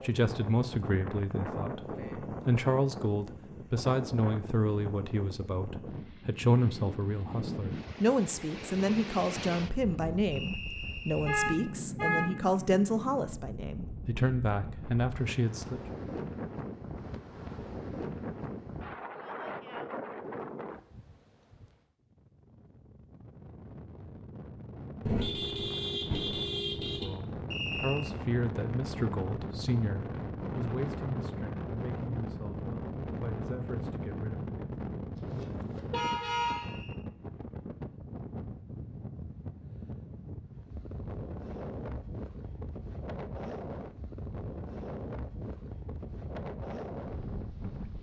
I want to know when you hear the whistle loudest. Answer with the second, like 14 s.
28 s.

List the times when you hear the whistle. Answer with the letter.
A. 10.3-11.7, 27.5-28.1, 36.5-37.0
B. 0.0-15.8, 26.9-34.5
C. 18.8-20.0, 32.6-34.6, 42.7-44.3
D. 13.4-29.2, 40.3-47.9
A.